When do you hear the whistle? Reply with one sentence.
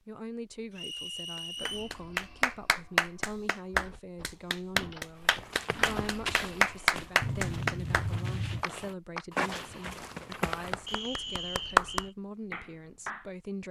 You can hear the whistle from 0.8 to 1.9 s and from 10.8 to 12.2 s.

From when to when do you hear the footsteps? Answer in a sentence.
The footsteps can be heard from 5.2 to 11.1 s.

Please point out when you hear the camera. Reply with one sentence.
You can hear the camera from 7.2 to 8.7 s.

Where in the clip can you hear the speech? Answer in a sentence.
You can hear the speech from 0.1 to 13.6 s.